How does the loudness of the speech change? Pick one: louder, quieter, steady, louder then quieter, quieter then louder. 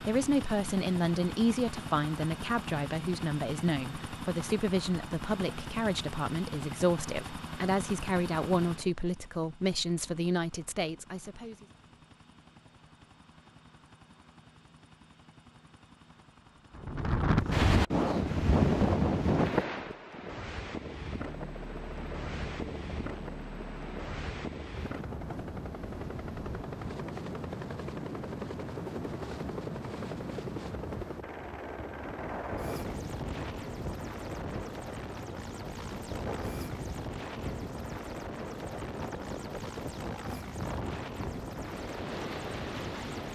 steady.